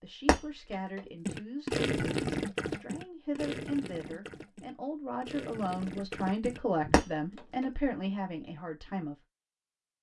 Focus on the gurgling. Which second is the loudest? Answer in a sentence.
The volume of the gurgling peaks at 2 seconds.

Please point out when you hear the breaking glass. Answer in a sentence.
You can hear the breaking glass from 0.2 to 1.0 s and from 6.9 to 7.7 s.